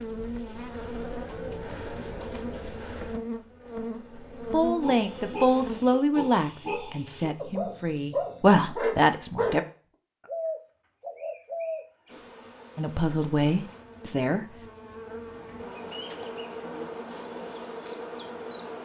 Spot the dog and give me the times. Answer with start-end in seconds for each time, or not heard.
4.8-9.6.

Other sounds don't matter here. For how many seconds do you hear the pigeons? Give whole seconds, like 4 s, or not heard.
4 s.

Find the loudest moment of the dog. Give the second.
9 s.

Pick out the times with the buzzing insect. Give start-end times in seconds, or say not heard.
0.0-5.8, 12.1-18.8.